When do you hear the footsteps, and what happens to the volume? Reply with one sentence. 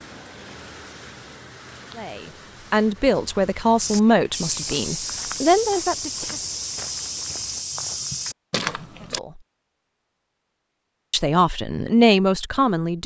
The footsteps can be heard from 3.8 to 9.2 s, at a steady volume.